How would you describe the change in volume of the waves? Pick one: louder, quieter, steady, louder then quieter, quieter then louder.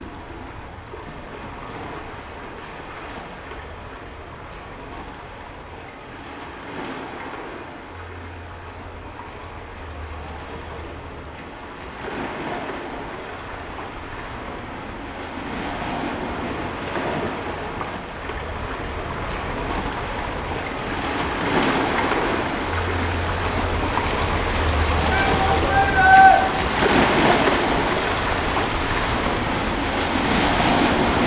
louder.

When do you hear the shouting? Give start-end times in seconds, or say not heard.
25.1-26.4.